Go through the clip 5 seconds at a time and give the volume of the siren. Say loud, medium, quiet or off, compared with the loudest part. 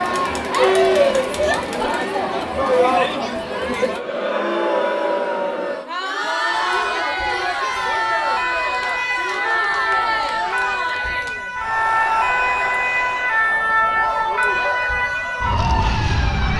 off, loud, loud, loud.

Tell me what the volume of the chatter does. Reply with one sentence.
The loudness of the chatter goes down.